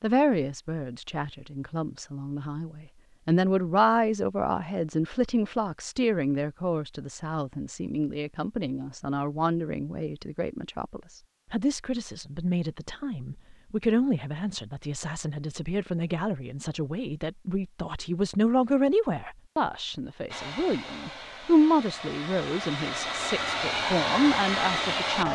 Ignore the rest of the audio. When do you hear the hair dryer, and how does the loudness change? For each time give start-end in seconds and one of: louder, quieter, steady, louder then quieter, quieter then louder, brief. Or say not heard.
20.3-25.3 louder.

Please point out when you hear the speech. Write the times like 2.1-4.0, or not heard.
0.0-25.3.